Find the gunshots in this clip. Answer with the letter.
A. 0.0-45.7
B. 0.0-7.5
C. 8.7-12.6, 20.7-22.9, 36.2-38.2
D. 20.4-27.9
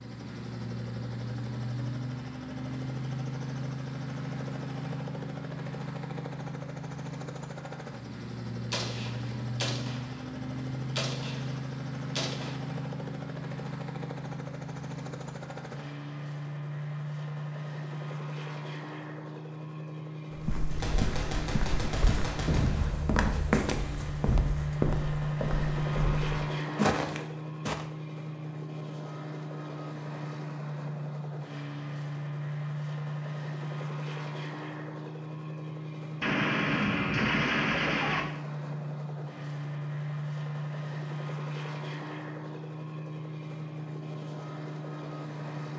C.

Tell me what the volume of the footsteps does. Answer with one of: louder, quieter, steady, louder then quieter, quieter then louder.
louder.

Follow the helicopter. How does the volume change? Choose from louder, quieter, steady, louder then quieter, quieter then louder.
steady.